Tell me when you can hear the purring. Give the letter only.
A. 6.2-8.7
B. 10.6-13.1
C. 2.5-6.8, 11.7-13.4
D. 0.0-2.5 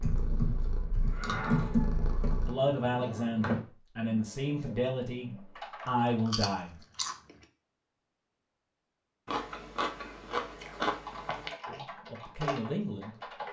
D.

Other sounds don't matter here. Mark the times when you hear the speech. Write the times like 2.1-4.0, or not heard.
2.5-6.8, 11.7-13.4.